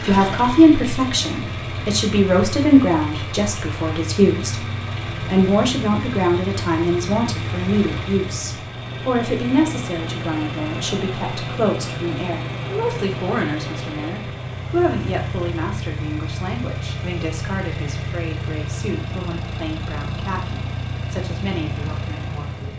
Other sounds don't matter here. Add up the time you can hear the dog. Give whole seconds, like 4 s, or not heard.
not heard.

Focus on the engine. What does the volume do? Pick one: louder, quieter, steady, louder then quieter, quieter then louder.
steady.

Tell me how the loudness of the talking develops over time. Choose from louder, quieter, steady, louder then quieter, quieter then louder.
quieter.